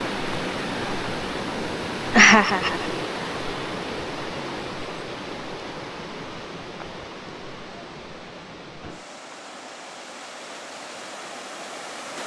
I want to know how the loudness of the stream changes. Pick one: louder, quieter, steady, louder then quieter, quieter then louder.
quieter.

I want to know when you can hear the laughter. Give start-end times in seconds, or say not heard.
2.1-2.9.